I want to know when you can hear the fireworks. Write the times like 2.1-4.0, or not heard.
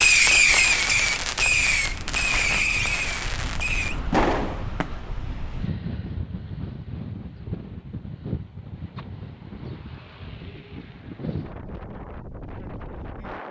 0.0-4.9.